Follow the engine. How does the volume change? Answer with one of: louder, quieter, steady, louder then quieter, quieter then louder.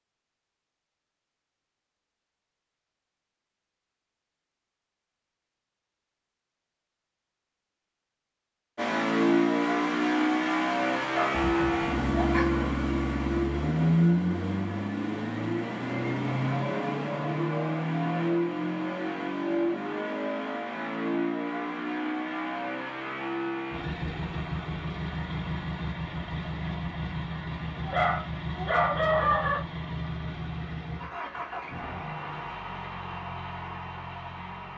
quieter.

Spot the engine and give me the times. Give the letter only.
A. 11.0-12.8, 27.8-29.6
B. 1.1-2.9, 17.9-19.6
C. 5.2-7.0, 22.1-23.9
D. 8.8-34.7
D.